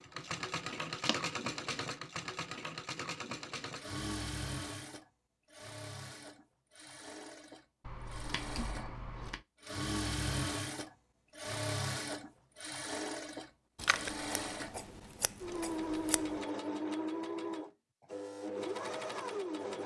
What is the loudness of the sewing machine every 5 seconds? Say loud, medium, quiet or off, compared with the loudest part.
loud, medium, loud, loud.